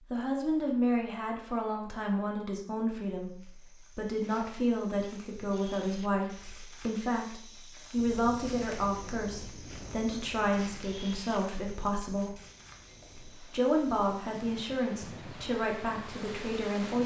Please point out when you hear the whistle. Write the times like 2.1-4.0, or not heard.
not heard.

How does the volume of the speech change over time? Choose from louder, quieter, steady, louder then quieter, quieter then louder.
steady.